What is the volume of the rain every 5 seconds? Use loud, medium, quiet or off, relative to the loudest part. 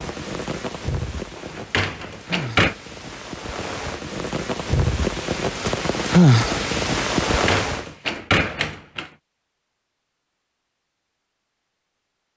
medium, loud, off.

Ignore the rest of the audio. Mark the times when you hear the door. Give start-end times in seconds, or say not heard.
1.4-2.8, 7.3-9.1.